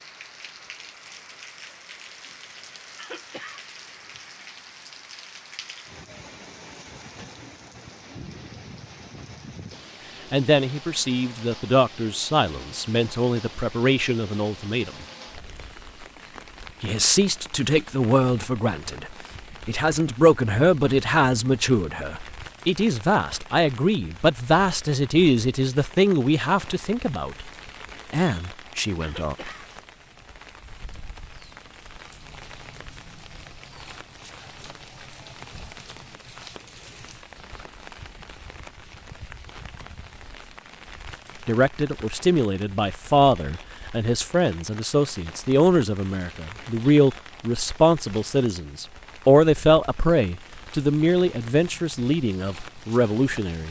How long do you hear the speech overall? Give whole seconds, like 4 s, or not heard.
29 s.